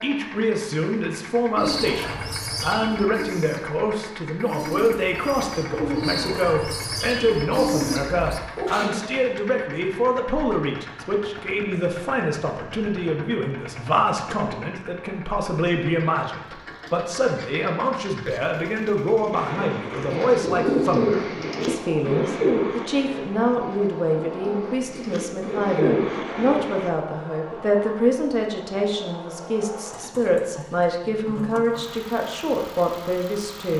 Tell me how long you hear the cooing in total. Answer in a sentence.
The cooing can be heard for 15 seconds in total.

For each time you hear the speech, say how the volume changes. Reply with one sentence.
You can hear the speech from 0.0 to 33.7 s, at a steady volume.